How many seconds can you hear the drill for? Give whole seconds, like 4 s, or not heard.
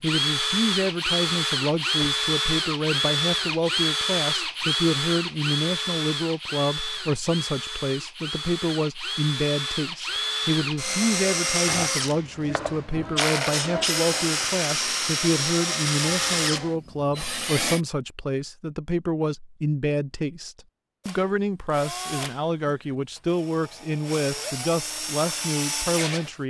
23 s.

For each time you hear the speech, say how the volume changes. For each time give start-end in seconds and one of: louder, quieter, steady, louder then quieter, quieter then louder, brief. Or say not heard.
0.0-26.4 steady.